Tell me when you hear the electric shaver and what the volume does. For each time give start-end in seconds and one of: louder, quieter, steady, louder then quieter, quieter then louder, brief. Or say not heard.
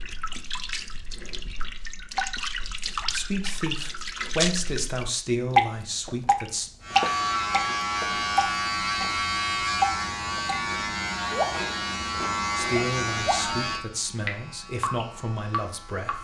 6.8-16.1 quieter.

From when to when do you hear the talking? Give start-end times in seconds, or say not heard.
3.0-6.7, 12.6-16.1.